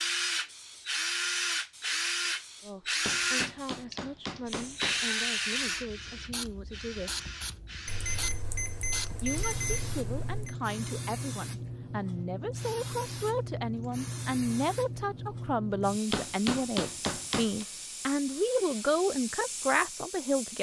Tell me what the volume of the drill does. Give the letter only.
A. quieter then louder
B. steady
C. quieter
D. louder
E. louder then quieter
C.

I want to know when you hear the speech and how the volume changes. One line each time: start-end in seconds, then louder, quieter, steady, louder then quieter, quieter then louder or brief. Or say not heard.
2.6-7.2 steady
9.2-20.5 louder.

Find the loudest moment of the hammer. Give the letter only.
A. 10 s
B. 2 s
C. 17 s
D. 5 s
C.